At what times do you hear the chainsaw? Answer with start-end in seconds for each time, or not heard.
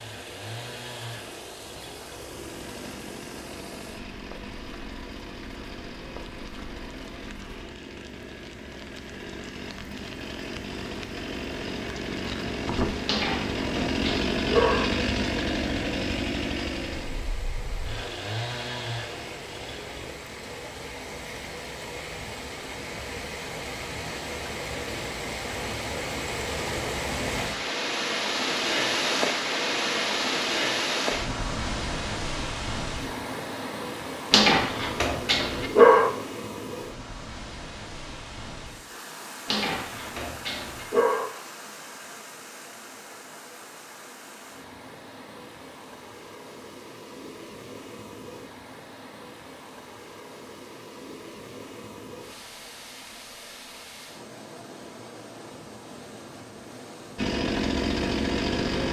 0.0-20.2, 57.1-58.8.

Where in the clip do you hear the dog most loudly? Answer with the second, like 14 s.
36 s.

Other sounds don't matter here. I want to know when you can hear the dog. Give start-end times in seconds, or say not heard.
13.1-14.8, 34.3-36.1, 39.5-41.2.